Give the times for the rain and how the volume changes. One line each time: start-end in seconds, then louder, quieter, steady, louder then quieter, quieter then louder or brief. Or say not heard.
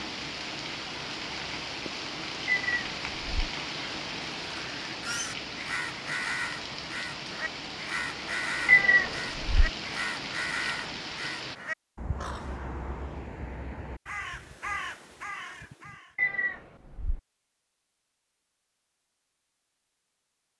0.0-11.6 steady.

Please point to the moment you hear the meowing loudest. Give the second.
9 s.